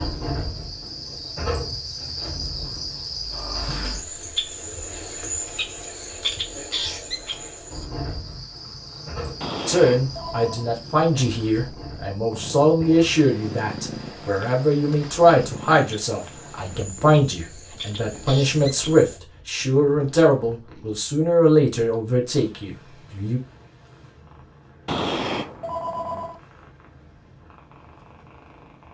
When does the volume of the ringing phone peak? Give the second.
25 s.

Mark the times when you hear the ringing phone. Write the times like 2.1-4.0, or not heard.
9.4-10.7, 24.9-26.4.